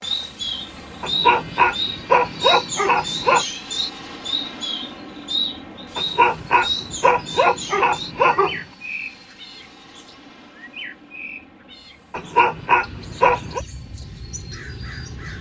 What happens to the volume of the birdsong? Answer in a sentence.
The loudness of the birdsong goes down.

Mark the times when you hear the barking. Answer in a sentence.
You can hear the barking from 1.0 to 3.5 s, from 6.0 to 8.6 s and from 12.1 to 13.6 s.